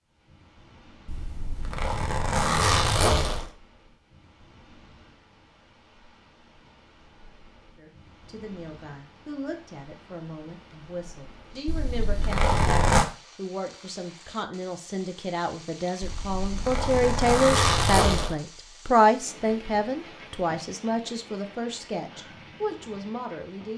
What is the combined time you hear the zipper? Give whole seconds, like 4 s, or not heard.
6 s.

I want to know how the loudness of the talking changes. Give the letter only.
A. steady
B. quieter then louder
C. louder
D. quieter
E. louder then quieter
E.